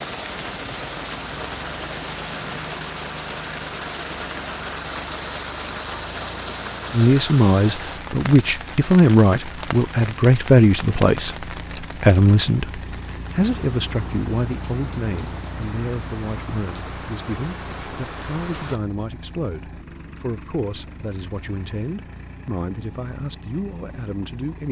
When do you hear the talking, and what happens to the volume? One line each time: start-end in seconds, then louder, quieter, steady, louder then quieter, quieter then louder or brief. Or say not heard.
6.9-24.6 quieter.